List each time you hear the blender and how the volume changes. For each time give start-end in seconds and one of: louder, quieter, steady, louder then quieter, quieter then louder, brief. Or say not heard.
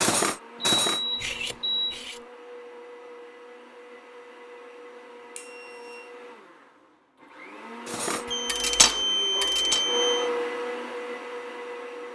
0.2-12.0 louder.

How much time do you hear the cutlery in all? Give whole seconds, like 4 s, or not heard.
4 s.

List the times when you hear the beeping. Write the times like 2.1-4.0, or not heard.
0.6-2.0, 5.3-6.0, 8.2-10.3.